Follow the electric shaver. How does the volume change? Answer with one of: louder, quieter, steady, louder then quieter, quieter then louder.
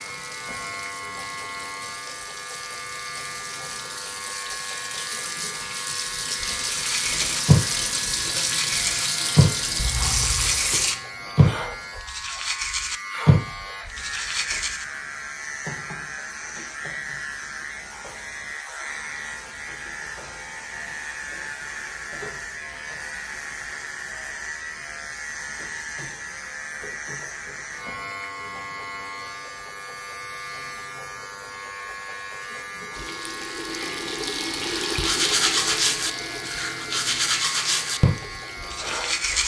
steady.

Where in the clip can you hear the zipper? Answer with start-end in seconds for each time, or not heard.
9.8-10.6.